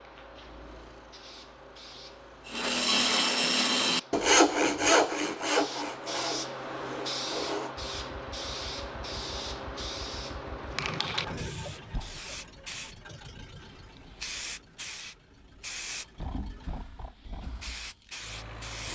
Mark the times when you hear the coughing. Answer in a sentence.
You can't hear the coughing here.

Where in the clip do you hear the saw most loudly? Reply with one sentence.
The volume of the saw peaks at 4 seconds.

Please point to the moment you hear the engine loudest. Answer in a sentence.
The loudest moment of the engine is at 11 seconds.